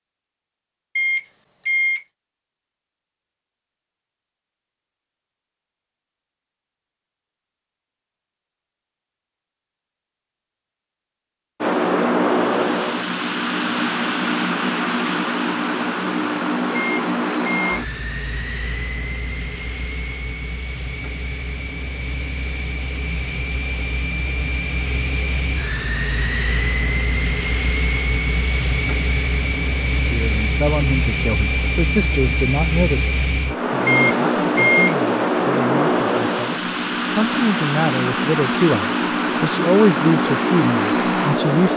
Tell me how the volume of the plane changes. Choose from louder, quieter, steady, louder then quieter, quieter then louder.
quieter then louder.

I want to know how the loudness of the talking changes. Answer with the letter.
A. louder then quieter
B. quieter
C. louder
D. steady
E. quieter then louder
E.